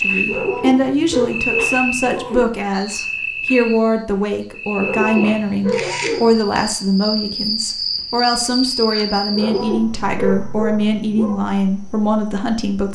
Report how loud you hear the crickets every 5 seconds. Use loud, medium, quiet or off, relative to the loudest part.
loud, loud, quiet.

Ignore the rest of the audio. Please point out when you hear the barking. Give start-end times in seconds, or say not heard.
0.2-2.5, 4.8-6.3, 9.3-11.3.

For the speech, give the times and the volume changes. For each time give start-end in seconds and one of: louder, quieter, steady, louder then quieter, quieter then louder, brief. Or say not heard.
0.0-12.9 steady.